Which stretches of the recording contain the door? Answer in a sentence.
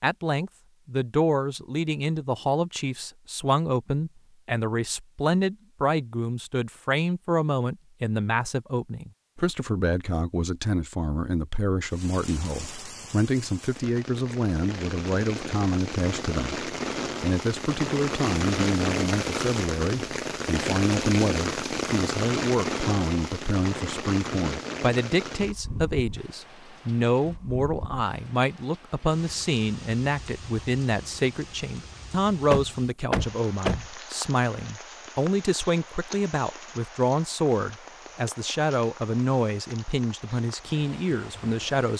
The door can be heard from 32.5 to 33.9 s.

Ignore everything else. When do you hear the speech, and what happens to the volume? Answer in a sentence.
You can hear the speech from 0.0 to 41.9 s, at a steady volume.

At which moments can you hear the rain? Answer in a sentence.
The rain can be heard from 11.8 to 41.9 s.